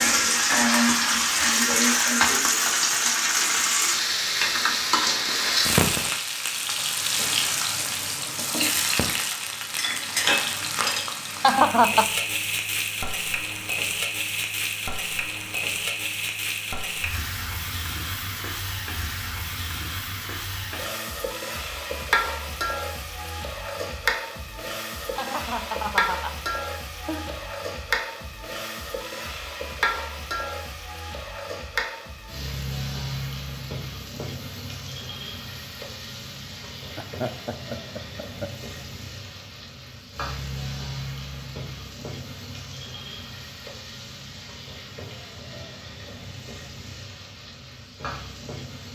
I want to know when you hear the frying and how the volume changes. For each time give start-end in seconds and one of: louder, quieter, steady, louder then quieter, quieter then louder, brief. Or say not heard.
0.0-48.9 quieter.